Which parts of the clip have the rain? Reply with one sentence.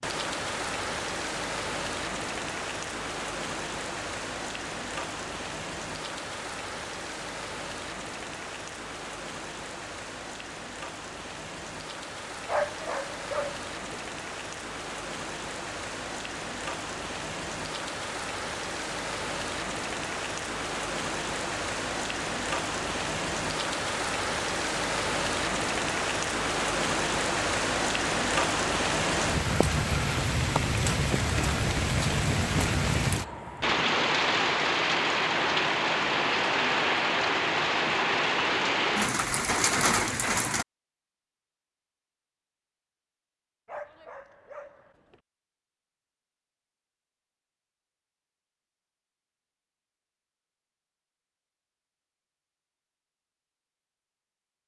The rain can be heard from 0.0 to 40.6 s.